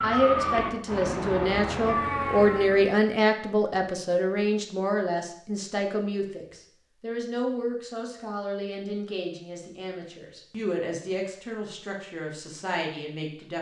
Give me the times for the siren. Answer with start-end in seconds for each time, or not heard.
0.0-3.0.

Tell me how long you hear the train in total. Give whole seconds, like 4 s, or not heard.
not heard.